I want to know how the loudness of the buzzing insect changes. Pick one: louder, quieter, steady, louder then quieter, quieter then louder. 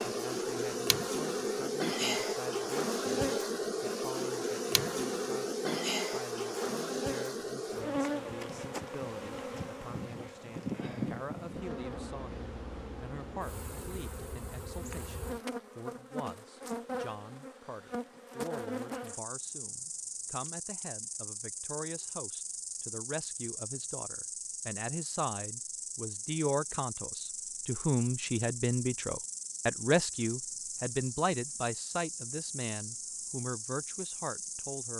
quieter.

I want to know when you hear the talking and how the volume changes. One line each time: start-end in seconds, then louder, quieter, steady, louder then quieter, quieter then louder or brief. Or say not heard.
0.0-34.9 louder.